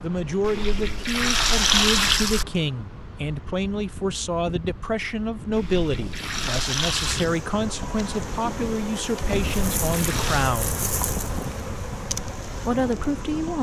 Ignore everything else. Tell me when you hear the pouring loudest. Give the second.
2 s.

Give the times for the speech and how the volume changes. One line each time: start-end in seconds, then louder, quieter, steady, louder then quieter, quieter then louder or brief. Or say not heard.
0.0-10.8 steady
12.5-13.5 brief.